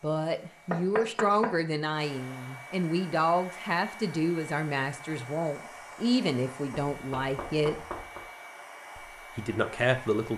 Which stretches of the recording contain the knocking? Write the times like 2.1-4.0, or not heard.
0.7-1.6, 7.0-8.2.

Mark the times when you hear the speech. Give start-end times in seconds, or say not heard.
0.0-7.8, 8.9-10.3.